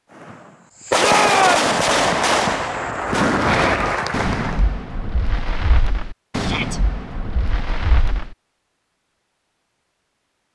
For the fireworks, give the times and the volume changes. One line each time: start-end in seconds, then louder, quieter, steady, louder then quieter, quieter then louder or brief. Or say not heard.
0.1-8.3 quieter.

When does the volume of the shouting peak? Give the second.
1 s.